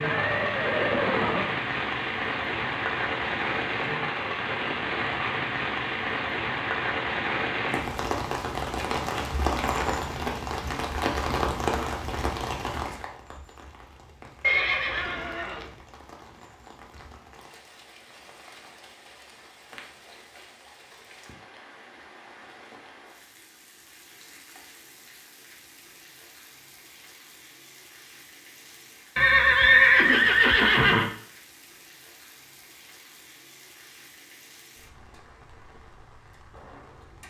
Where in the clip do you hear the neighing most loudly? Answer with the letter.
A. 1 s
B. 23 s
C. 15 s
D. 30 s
D.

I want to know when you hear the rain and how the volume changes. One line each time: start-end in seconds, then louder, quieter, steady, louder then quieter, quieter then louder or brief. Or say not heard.
0.0-37.2 quieter.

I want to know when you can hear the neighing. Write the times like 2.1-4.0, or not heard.
0.0-1.4, 14.4-15.7, 29.1-31.1.